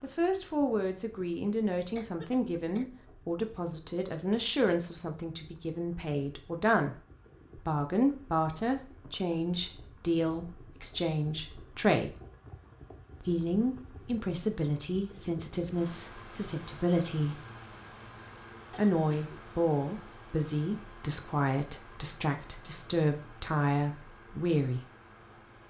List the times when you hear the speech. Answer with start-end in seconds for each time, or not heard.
0.0-12.2, 13.2-17.4, 18.8-24.8.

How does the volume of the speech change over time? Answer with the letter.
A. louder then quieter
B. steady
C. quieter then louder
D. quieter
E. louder
B.